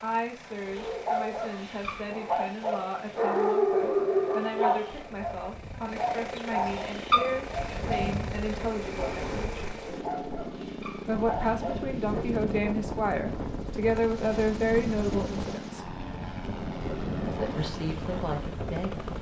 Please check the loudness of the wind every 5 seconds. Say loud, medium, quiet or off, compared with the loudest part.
off, loud, loud, loud.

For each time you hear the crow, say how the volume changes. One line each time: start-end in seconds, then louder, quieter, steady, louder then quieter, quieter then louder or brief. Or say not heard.
not heard.